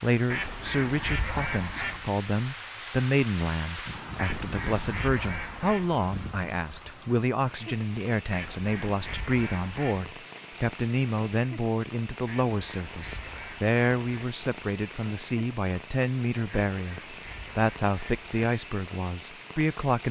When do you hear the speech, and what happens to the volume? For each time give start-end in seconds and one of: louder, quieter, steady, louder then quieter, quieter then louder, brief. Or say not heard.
0.0-20.0 steady.